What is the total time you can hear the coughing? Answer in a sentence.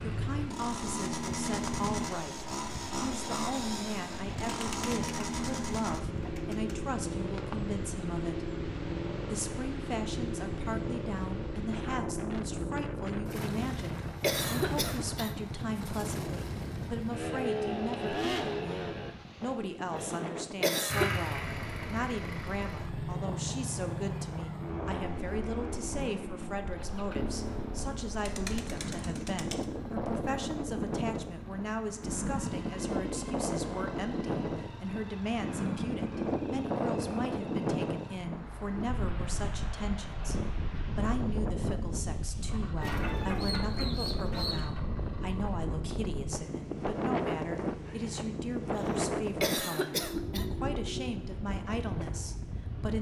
The coughing can be heard for 3 seconds in total.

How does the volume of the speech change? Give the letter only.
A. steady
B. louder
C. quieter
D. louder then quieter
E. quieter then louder
A.